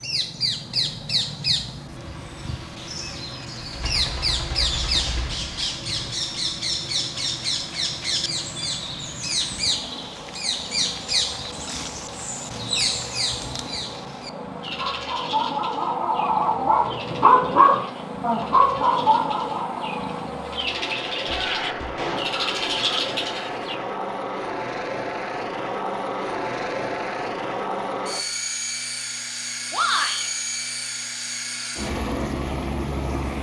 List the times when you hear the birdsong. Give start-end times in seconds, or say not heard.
0.0-23.8.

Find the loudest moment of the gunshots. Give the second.
22 s.